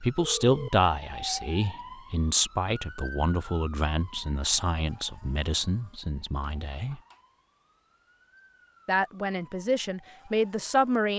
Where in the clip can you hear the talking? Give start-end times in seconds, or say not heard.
0.0-7.0, 8.8-11.1.